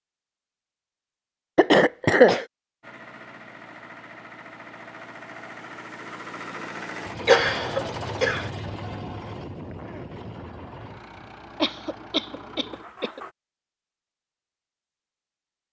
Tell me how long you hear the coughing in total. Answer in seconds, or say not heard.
4 s.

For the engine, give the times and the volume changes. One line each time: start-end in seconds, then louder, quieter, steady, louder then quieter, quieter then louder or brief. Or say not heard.
2.8-13.3 louder then quieter.